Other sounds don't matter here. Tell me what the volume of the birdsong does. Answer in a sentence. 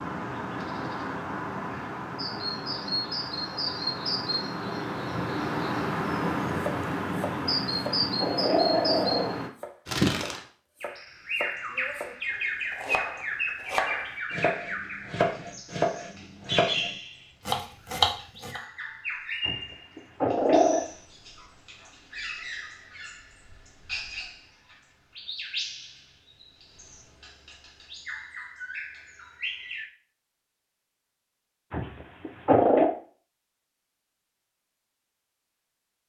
The volume of the birdsong goes down.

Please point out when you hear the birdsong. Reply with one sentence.
You can hear the birdsong from 0.0 to 29.9 s.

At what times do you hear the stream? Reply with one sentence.
You can't hear the stream here.